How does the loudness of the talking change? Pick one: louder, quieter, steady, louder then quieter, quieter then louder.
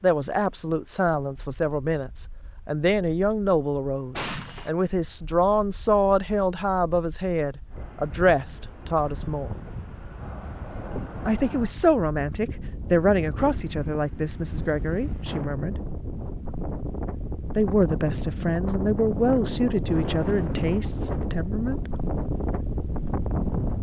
steady.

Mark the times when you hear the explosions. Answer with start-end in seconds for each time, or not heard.
4.2-4.7.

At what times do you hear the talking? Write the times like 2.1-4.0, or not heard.
0.0-9.6, 11.2-15.8, 17.6-21.9.